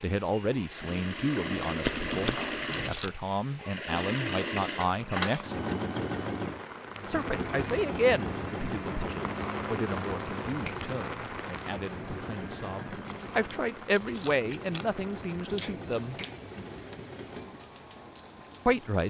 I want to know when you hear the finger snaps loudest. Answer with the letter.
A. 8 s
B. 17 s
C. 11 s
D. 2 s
D.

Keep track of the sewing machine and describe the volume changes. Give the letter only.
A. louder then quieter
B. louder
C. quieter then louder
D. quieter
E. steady
D.